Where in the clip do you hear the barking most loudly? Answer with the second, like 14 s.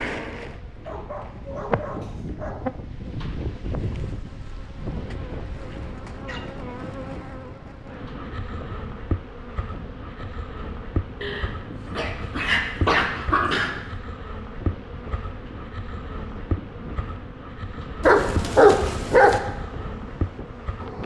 19 s.